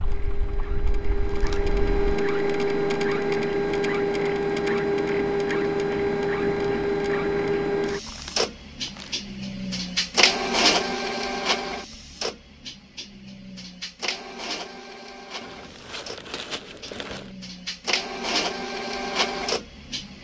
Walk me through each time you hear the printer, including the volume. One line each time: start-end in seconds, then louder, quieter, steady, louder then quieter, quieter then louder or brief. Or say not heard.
0.0-20.1 quieter then louder.